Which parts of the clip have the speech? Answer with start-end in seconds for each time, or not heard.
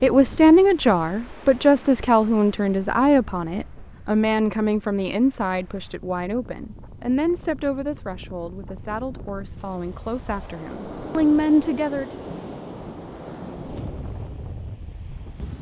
0.0-12.1.